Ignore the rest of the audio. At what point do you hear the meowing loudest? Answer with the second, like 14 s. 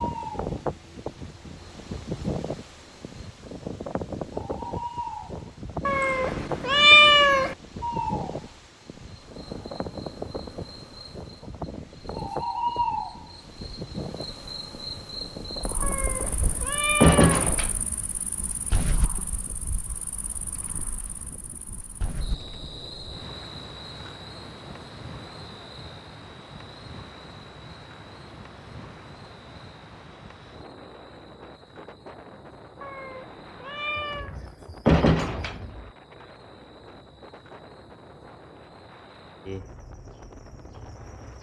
7 s.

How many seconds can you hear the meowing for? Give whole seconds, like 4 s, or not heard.
5 s.